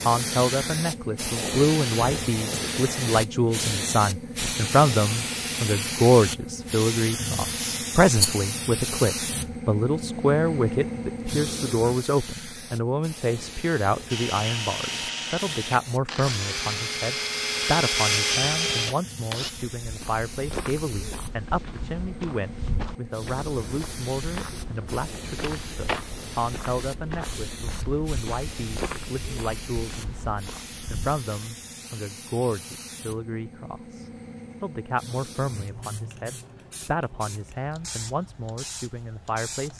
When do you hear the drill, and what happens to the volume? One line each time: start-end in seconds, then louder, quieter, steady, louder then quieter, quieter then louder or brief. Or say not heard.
14.1-19.5 louder.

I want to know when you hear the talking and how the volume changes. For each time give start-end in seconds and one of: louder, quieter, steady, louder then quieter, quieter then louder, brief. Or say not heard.
0.1-39.7 quieter.